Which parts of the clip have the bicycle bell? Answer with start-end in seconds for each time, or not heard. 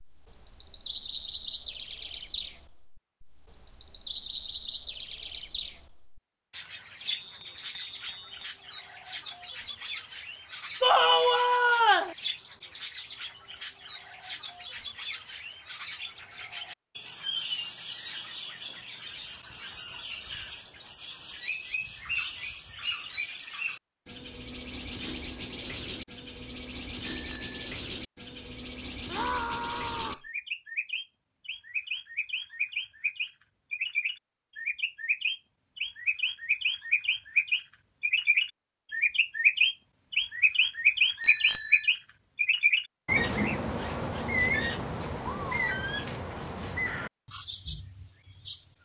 7.2-8.6, 27.0-27.6, 41.2-41.9.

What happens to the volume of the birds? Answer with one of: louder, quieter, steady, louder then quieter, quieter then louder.
louder.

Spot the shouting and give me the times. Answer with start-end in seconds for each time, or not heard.
10.8-12.2, 29.1-30.2.